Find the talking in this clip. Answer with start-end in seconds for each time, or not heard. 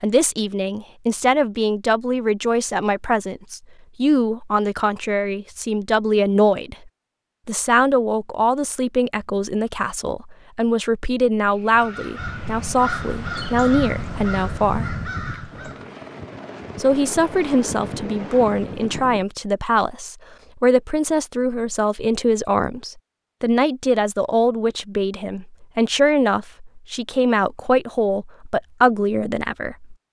0.0-6.8, 7.5-14.9, 16.8-29.9.